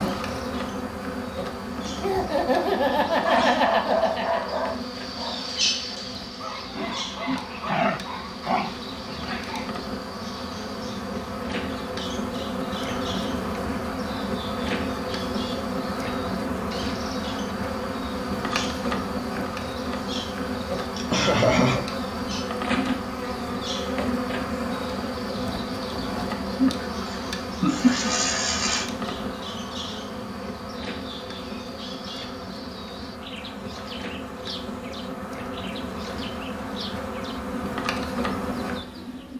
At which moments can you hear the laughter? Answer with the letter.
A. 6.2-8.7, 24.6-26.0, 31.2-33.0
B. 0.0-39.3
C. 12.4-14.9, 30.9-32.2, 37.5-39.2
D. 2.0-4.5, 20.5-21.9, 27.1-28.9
D.